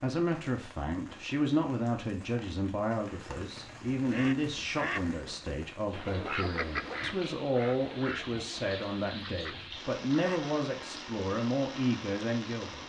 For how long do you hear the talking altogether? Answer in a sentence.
The talking can be heard for 13 seconds in total.